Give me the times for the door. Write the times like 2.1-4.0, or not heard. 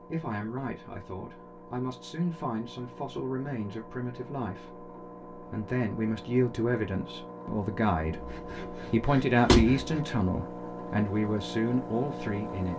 9.4-9.8.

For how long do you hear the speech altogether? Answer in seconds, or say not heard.
13 s.